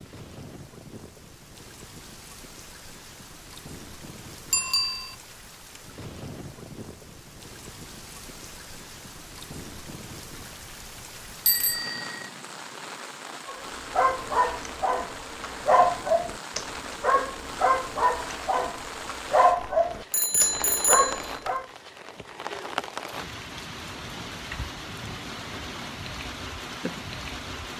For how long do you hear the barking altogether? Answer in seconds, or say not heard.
8 s.